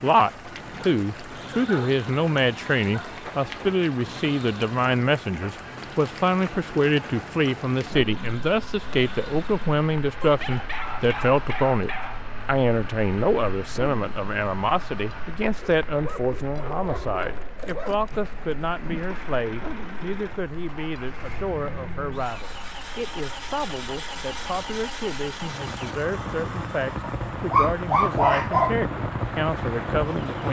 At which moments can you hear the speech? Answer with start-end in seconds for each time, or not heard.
0.0-30.4.